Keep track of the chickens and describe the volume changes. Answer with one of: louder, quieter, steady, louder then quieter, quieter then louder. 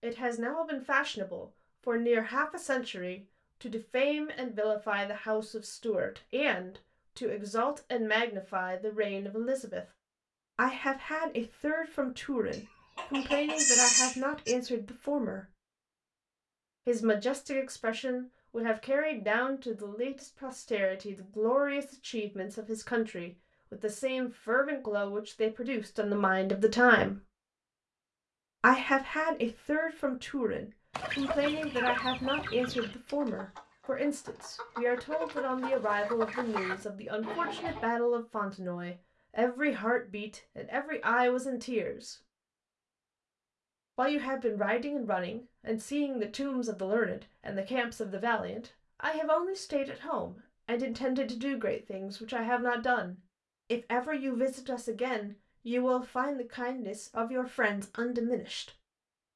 quieter then louder.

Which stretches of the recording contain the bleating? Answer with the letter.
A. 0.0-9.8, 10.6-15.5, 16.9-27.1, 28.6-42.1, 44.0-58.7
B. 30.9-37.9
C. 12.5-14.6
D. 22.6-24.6
C.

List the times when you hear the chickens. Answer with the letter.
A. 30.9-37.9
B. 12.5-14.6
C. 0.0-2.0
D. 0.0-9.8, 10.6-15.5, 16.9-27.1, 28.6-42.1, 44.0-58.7
A.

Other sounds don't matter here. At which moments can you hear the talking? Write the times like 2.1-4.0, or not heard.
0.0-9.8, 10.6-15.5, 16.9-27.1, 28.6-42.1, 44.0-58.7.